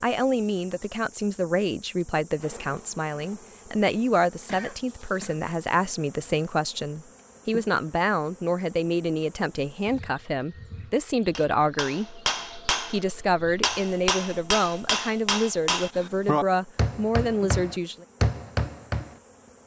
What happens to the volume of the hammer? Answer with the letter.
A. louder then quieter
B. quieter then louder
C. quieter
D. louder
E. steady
E.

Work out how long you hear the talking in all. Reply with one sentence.
The talking can be heard for 17 seconds in total.